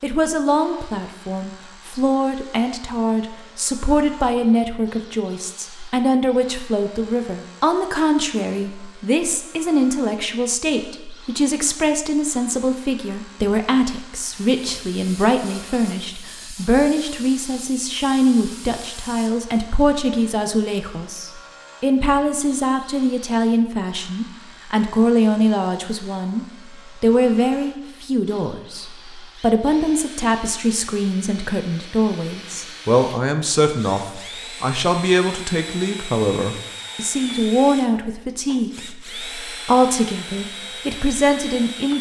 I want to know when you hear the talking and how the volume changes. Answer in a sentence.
The talking can be heard from 0.0 to 41.9 s, at a steady volume.